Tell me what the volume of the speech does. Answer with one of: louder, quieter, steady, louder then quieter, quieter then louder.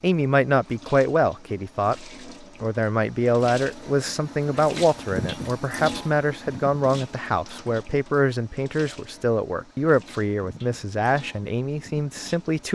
steady.